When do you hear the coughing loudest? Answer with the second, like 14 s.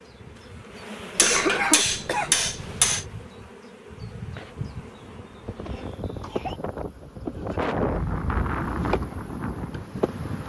2 s.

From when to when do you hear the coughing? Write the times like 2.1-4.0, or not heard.
0.8-2.4, 5.6-6.6.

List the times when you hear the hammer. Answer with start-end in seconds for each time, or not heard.
1.1-3.0.